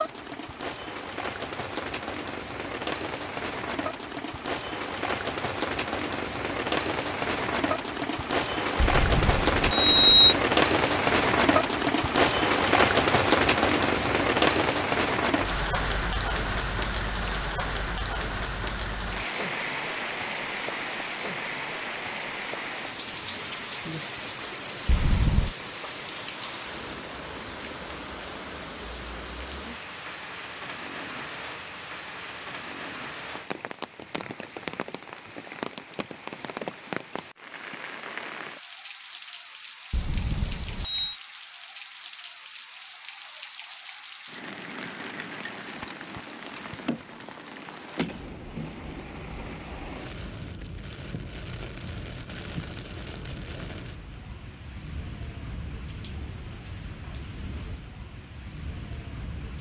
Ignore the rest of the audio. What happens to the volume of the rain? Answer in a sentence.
The loudness of the rain goes down.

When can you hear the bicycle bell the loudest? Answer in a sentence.
The loudest moment of the bicycle bell is at 10 seconds.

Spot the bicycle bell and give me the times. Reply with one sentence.
You can hear the bicycle bell from 8.8 to 10.3 s, from 24.9 to 25.5 s and from 39.9 to 41.1 s.